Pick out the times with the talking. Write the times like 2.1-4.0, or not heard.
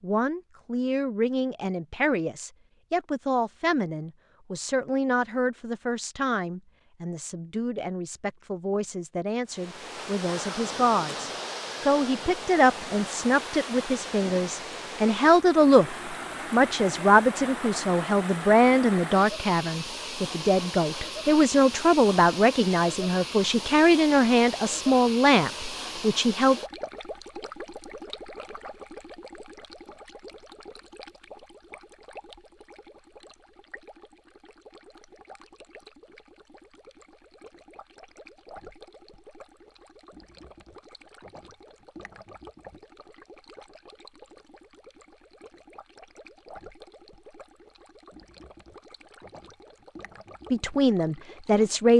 0.0-26.6, 50.5-51.9.